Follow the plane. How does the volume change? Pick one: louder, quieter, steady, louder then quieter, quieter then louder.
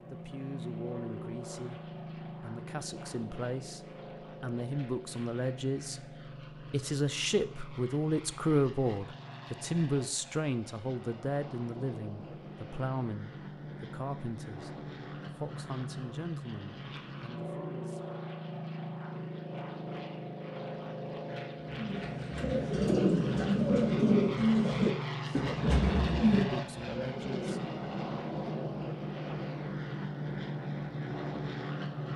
louder.